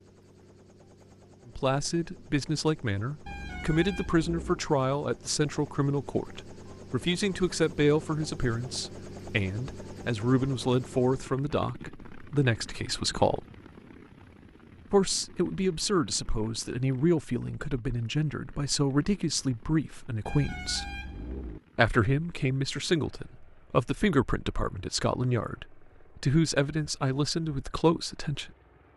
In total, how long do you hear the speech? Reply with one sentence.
The speech can be heard for 25 seconds in total.